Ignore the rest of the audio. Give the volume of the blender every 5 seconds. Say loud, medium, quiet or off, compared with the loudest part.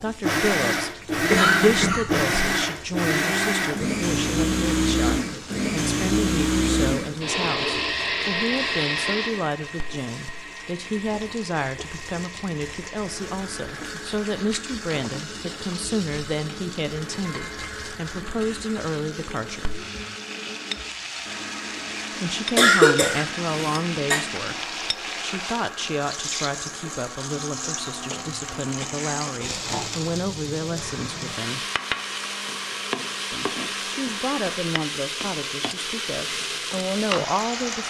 loud, loud, quiet, quiet, quiet, quiet, quiet, off.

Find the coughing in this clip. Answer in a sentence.
The coughing can be heard from 1.1 to 2.4 s and from 22.6 to 24.2 s.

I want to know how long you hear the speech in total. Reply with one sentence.
You can hear the speech for 34 seconds altogether.